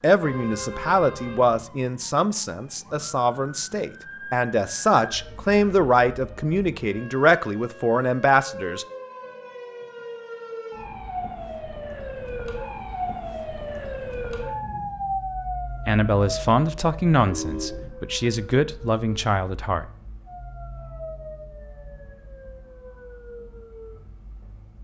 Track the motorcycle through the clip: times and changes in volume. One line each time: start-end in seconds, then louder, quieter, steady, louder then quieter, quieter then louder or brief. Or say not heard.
not heard.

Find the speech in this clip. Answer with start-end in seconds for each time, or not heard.
0.0-8.8, 15.8-19.9.